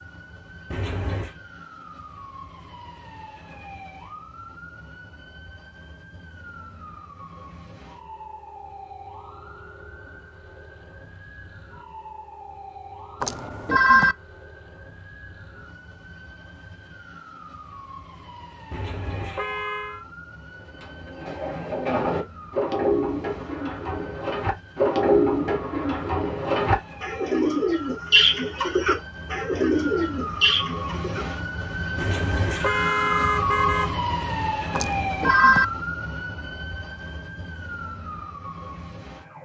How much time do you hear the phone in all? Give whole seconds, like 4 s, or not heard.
2 s.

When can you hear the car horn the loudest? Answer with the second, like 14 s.
33 s.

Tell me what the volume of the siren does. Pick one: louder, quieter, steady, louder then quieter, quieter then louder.
louder.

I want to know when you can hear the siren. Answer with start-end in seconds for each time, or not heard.
0.0-39.3.